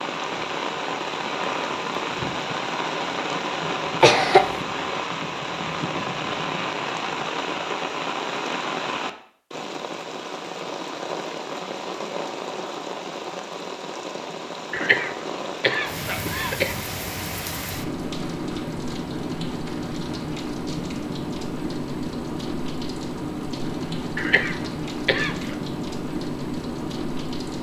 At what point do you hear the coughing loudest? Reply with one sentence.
The loudest moment of the coughing is at 4 seconds.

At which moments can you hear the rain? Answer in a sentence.
The rain can be heard from 0.0 to 27.5 s.